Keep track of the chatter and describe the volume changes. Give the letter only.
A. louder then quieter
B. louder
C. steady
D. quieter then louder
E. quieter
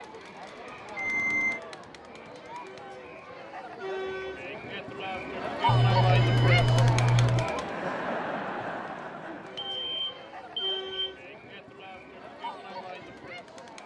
A.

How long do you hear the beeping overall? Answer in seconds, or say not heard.
4 s.